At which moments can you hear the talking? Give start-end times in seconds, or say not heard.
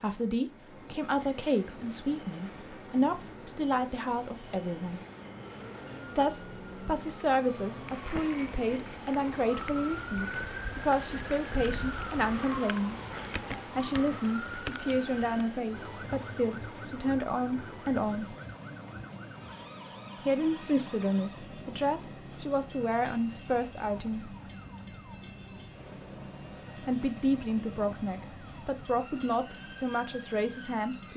0.0-5.0, 6.2-12.9, 13.7-18.4, 20.2-24.4, 26.9-31.1.